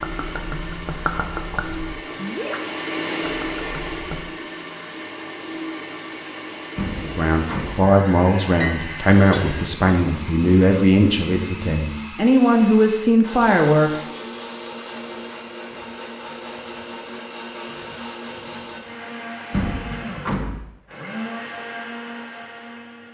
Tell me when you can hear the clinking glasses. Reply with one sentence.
The clinking glasses can be heard from 8.6 to 9.6 s.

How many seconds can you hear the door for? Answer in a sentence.
You can hear the door for 2 seconds altogether.